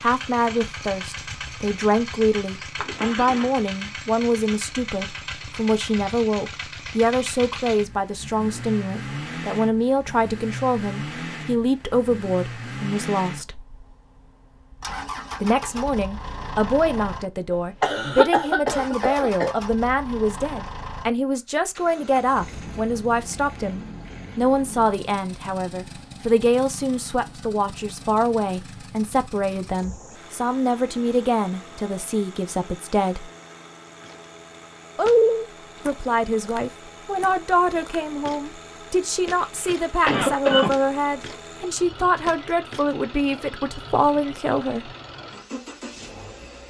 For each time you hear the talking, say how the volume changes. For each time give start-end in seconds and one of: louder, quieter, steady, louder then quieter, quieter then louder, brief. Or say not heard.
0.0-13.6 steady
15.4-33.3 steady
35.0-44.9 steady.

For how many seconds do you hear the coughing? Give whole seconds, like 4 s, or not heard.
4 s.